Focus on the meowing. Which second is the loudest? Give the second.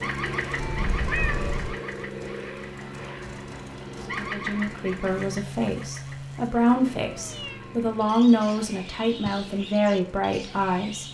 1 s.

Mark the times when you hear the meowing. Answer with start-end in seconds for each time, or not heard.
0.6-1.6, 7.0-8.0.